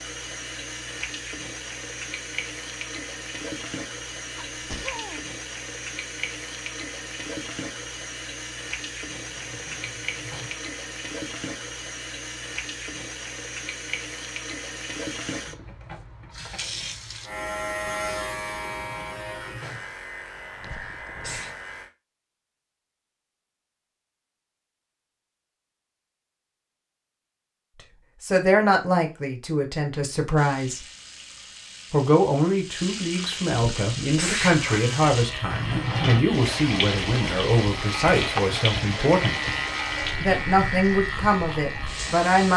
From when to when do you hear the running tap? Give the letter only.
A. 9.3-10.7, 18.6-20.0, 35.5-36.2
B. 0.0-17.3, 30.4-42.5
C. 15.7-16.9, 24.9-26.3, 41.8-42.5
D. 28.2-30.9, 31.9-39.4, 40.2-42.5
B.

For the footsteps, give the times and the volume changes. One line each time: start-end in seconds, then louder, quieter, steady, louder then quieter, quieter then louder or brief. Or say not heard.
not heard.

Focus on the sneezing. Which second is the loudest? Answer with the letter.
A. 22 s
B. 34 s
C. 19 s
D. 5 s
B.